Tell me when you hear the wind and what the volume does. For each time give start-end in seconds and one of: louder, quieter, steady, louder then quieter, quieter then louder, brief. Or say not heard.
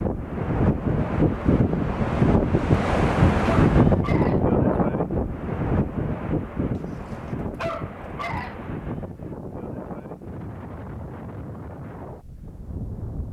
0.0-13.2 quieter.